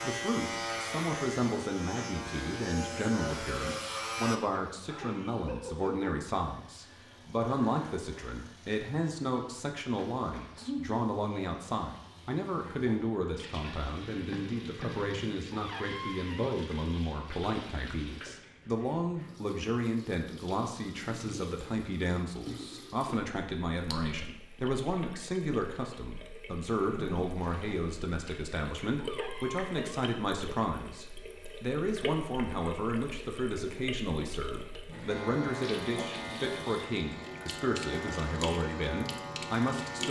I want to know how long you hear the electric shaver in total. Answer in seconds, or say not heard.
9 s.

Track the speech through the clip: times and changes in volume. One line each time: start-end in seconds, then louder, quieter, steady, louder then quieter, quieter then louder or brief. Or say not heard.
0.0-40.0 steady.